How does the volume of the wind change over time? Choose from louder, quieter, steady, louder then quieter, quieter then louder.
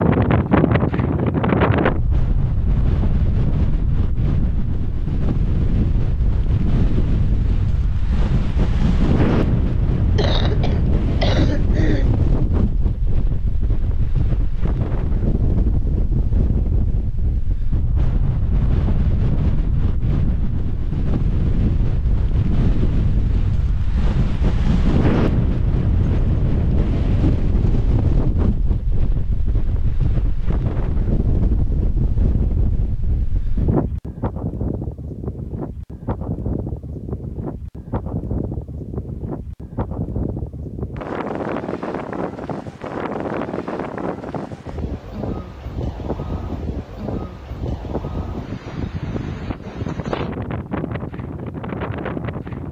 quieter.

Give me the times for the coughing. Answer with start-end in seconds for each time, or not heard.
10.2-12.1.